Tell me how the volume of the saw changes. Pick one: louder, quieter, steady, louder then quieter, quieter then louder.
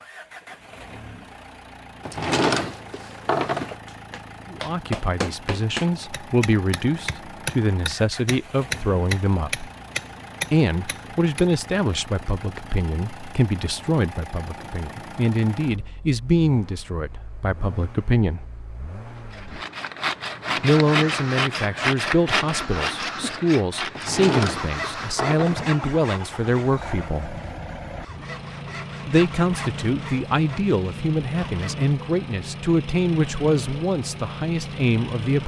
quieter.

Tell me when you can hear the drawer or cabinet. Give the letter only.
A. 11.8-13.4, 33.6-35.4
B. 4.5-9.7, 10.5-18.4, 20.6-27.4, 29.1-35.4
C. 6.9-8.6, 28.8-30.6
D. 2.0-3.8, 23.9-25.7
D.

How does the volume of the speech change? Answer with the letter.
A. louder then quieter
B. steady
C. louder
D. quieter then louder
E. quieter
B.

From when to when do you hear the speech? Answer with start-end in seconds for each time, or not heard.
4.5-9.7, 10.5-18.4, 20.6-27.4, 29.1-35.4.